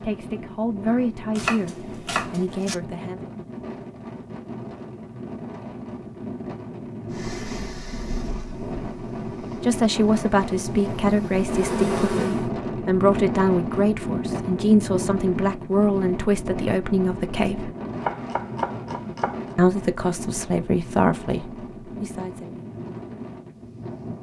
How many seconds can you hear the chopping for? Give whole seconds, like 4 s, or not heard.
3 s.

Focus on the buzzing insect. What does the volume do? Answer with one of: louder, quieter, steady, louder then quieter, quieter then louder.
quieter then louder.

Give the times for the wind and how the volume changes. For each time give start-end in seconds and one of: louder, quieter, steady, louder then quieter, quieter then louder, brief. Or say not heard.
0.0-24.1 louder then quieter.